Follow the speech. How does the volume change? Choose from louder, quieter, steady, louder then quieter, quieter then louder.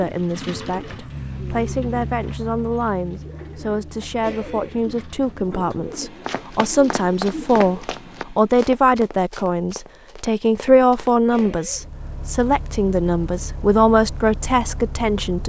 louder.